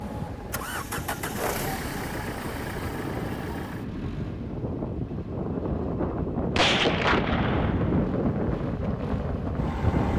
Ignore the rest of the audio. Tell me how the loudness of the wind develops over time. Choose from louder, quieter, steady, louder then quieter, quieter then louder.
louder.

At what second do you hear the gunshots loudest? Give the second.
7 s.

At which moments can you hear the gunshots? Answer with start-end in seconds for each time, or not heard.
6.2-8.1.